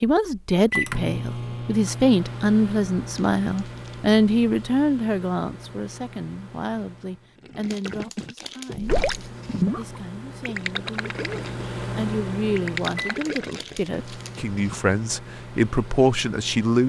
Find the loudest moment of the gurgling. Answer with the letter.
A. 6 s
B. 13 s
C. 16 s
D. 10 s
D.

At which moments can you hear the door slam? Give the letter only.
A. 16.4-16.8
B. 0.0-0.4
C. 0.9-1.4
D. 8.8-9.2
D.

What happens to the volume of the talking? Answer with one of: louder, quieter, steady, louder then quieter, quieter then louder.
quieter then louder.